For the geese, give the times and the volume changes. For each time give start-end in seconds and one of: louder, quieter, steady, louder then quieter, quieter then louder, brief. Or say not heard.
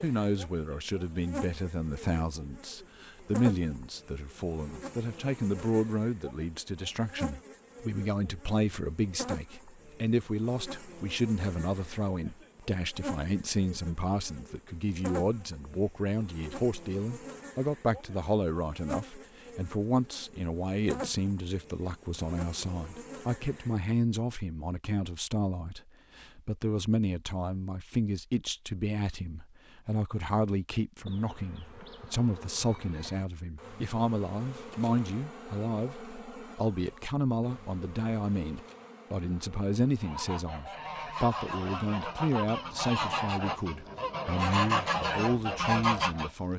40.0-46.3 louder.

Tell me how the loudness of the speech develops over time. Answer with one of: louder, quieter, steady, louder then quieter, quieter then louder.
steady.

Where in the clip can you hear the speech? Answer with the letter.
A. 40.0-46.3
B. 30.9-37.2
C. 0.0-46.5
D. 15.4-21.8
C.